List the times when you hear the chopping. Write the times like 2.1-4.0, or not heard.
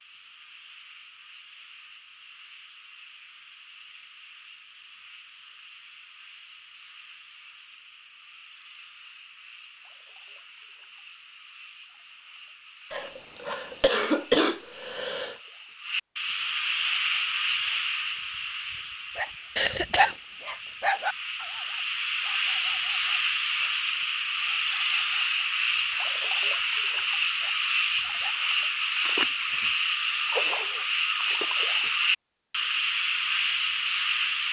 not heard.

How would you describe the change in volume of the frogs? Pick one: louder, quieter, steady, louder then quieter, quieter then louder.
louder.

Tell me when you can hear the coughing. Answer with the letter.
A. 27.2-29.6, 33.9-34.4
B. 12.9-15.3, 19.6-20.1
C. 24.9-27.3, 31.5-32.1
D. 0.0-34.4
B.